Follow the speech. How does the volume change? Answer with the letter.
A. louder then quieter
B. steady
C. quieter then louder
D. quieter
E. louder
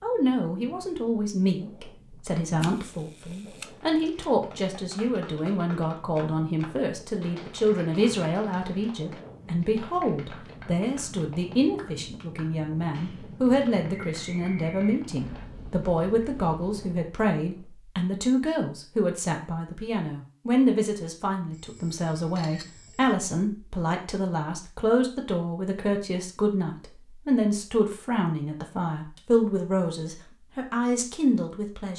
B.